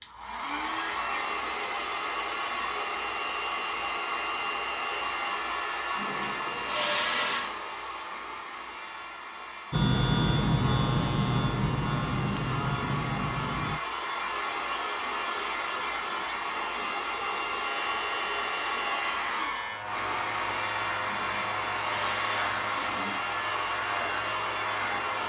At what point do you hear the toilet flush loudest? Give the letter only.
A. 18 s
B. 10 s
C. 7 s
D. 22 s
C.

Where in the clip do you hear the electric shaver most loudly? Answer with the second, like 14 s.
10 s.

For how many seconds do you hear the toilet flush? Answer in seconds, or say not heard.
4 s.